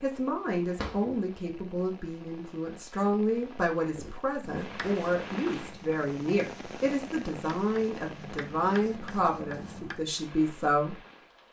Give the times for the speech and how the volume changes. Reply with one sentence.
The speech can be heard from 0.0 to 10.9 s, at a steady volume.